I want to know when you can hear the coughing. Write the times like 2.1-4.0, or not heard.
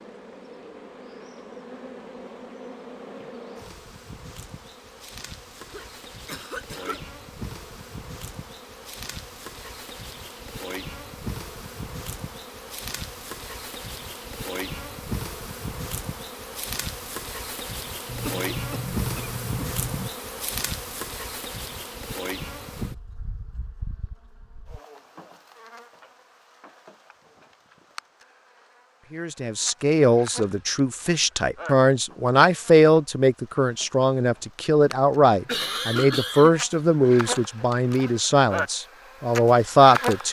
5.7-7.0, 18.1-20.1, 35.5-36.8.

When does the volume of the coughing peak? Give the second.
36 s.